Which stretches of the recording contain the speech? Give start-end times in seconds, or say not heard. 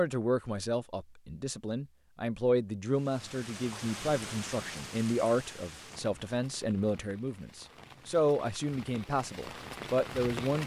0.0-10.6.